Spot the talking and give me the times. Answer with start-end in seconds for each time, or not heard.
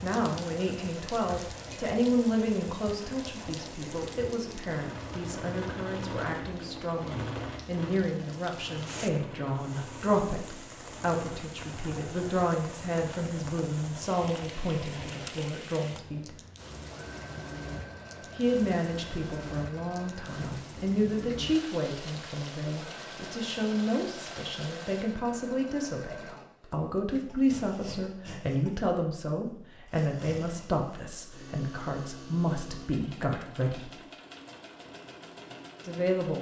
0.0-16.4, 18.4-34.0, 35.9-36.3.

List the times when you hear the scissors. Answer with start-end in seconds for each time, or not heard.
not heard.